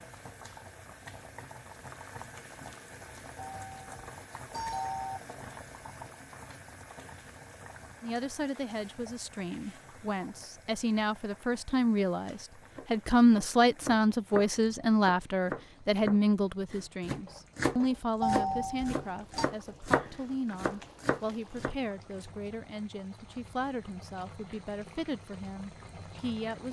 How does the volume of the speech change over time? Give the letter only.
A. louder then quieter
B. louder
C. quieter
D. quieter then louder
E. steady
A.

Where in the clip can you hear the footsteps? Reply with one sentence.
You can't hear the footsteps here.